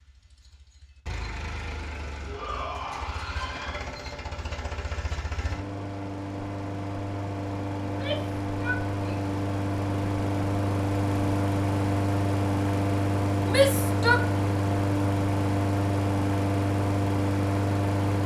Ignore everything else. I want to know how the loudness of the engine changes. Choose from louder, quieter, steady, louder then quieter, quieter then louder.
louder.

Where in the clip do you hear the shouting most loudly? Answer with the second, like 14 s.
14 s.